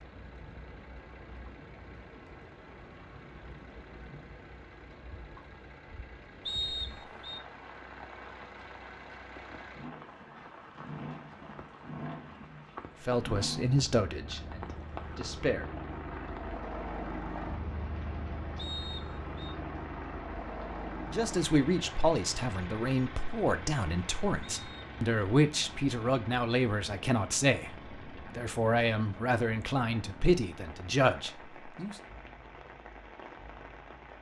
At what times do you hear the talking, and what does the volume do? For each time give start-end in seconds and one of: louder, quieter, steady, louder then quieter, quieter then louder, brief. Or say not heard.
13.1-15.7 brief
21.1-31.9 steady.